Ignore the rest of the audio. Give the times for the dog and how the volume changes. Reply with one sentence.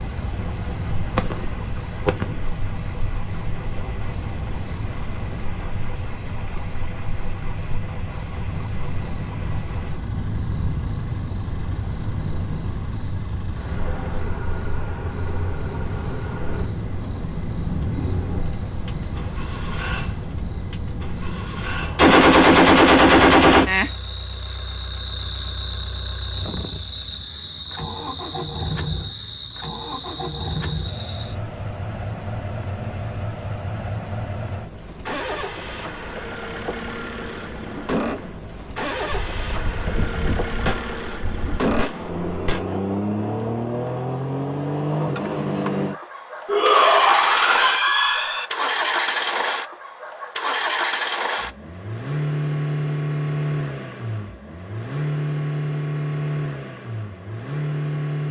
The dog can't be heard in this clip.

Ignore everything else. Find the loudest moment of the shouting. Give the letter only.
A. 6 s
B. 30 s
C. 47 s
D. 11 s
C.